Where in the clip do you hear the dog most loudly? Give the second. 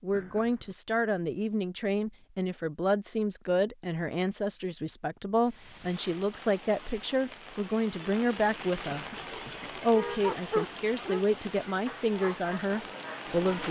10 s.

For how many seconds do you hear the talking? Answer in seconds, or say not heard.
13 s.